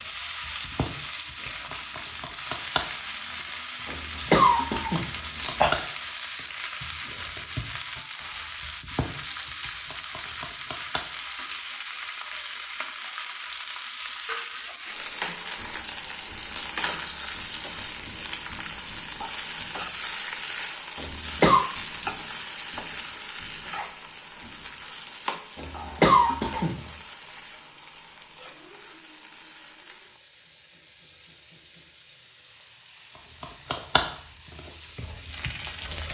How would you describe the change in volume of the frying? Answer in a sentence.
The volume of the frying goes down.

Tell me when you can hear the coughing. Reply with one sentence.
The coughing can be heard from 3.9 to 5.7 s, from 20.9 to 21.6 s and from 25.6 to 26.8 s.